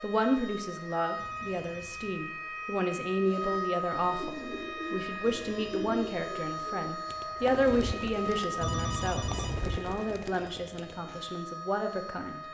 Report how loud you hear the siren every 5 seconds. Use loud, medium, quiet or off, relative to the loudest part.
loud, loud, medium.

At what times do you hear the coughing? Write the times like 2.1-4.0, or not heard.
not heard.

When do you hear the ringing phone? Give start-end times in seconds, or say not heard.
1.1-2.2, 5.2-6.0, 8.6-9.7.